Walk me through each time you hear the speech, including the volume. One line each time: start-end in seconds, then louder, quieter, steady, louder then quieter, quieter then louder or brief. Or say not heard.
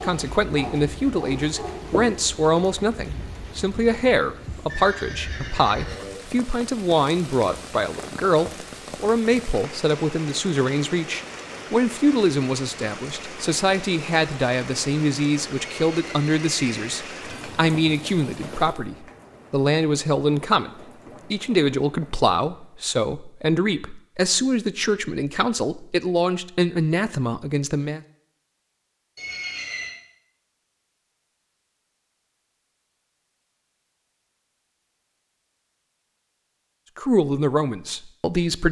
0.0-20.7 steady
21.3-28.0 steady
37.0-38.6 brief.